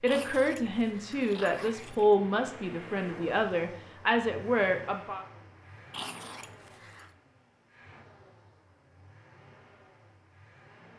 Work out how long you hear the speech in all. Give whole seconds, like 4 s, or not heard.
5 s.